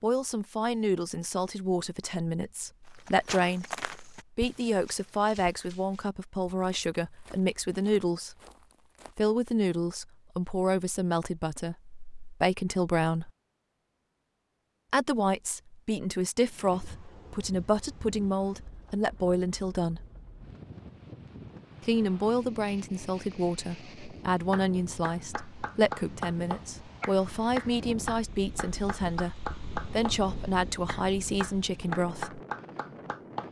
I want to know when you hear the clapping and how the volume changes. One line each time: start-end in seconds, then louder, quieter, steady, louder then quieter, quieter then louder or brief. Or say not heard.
24.5-30.2 louder
30.9-33.4 brief.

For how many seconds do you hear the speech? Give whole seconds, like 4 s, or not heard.
28 s.